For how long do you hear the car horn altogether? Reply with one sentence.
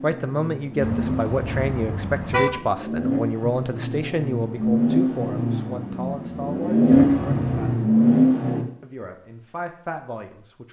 You can hear the car horn for 3 seconds altogether.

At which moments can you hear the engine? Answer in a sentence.
The engine can be heard from 0.0 to 8.7 s.